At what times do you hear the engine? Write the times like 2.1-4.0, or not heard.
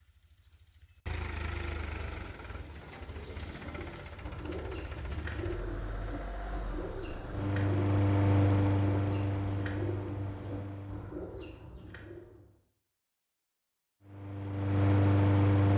0.0-11.2, 14.1-15.7.